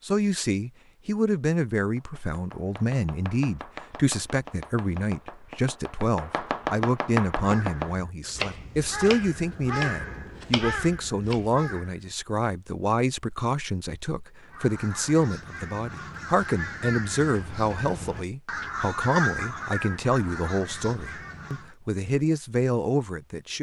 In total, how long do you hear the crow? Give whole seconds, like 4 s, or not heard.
12 s.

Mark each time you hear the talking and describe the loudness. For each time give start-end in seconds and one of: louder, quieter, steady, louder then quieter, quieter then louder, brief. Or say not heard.
0.0-23.5 steady.